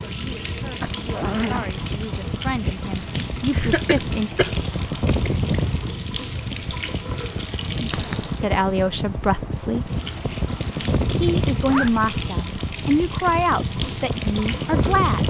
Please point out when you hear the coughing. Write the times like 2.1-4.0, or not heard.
3.5-4.5.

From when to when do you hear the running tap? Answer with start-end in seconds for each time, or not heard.
0.0-15.2.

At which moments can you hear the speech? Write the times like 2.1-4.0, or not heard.
0.1-4.3, 7.8-9.9, 11.2-15.2.